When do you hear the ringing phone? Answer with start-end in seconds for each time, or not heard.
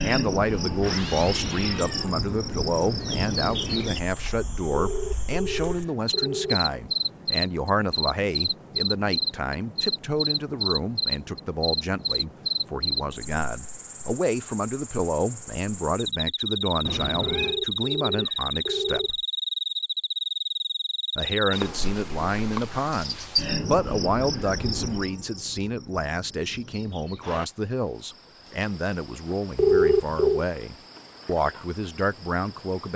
4.8-6.6, 17.2-19.1, 29.6-30.4.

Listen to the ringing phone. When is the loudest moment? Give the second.
30 s.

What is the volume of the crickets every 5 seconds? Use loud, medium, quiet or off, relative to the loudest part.
loud, loud, loud, loud, loud, quiet, quiet.